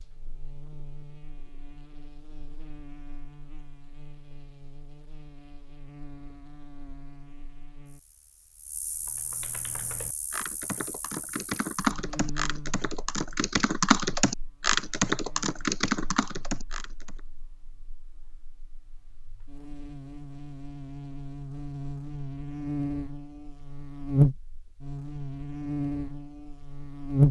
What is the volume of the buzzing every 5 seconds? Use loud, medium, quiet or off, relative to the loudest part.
quiet, quiet, quiet, quiet, loud, loud.